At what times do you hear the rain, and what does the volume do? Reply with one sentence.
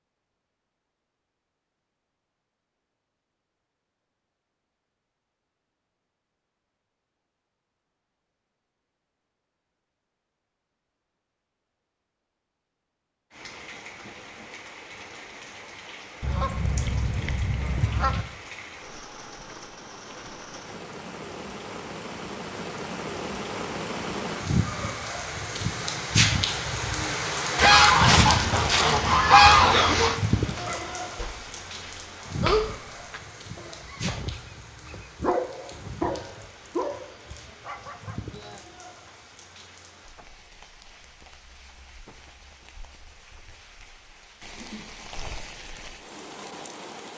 You can hear the rain from 13.3 to 47.1 s, getting louder then quieter.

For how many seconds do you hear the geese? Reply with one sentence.
The geese can be heard for 5 seconds in total.